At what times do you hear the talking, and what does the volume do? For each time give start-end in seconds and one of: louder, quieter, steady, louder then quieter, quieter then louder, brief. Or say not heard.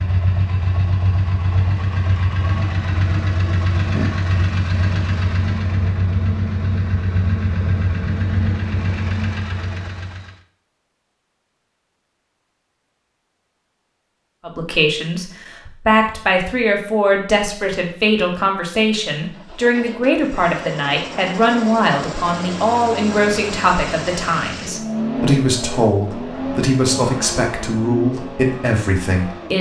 14.4-29.5 steady.